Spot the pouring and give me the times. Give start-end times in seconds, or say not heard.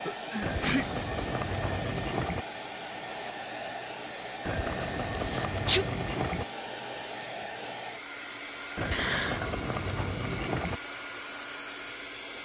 0.4-2.5, 4.5-6.5, 8.8-10.8.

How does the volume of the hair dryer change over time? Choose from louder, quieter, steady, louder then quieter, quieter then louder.
steady.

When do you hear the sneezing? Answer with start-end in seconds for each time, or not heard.
0.1-0.8, 5.2-6.3, 8.9-9.5.